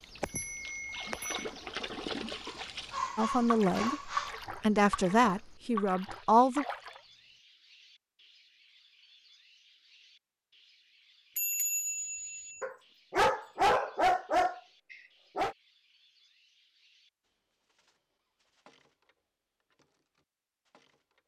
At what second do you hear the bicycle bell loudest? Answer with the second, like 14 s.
12 s.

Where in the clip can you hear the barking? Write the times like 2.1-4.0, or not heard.
2.5-4.3, 12.6-15.6.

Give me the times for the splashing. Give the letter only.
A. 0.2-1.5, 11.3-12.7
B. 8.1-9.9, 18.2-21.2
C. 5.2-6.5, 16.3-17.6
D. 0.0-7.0
D.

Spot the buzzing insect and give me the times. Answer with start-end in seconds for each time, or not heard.
not heard.